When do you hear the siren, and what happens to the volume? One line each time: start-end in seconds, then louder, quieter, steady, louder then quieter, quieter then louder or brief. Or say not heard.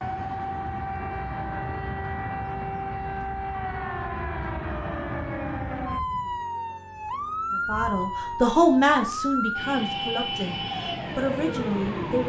0.0-12.2 steady.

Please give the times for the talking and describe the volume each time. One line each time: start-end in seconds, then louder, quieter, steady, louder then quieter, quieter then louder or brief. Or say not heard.
7.5-12.2 quieter then louder.